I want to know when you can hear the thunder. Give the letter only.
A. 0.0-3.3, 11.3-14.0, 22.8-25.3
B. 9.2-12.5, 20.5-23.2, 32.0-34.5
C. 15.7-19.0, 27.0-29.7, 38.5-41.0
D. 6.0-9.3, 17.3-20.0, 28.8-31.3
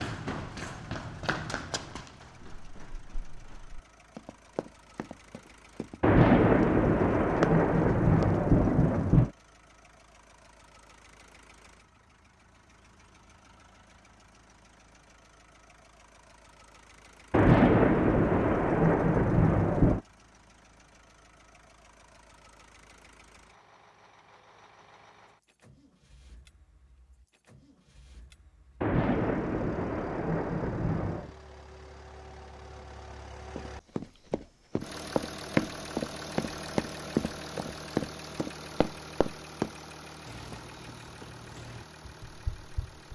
D.